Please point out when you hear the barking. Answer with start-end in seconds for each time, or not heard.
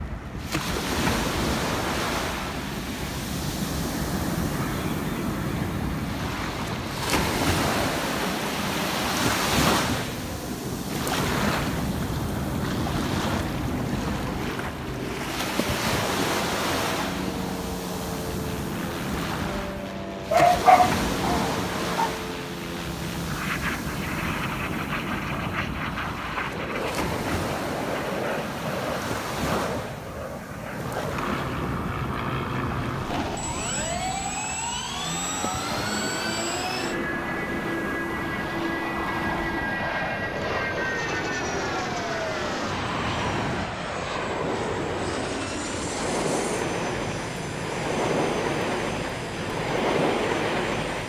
20.3-22.1.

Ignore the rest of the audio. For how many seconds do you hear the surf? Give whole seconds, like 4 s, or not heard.
51 s.